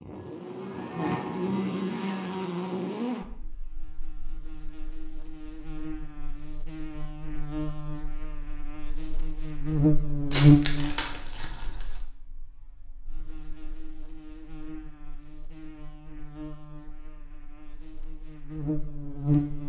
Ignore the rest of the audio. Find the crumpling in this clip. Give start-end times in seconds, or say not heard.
10.3-12.0.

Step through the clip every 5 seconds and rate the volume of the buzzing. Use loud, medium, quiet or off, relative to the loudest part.
medium, medium, loud, medium.